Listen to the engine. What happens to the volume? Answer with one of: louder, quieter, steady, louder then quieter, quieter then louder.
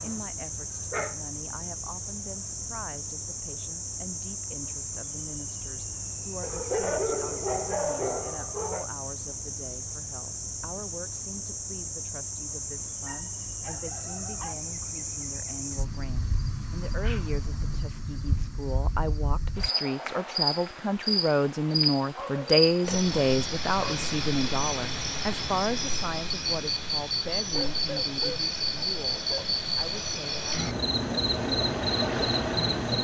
louder.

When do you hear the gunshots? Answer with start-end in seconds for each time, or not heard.
not heard.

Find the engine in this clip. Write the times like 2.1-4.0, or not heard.
27.6-33.0.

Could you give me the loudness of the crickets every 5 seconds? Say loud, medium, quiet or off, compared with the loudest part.
medium, medium, medium, medium, loud, loud, loud.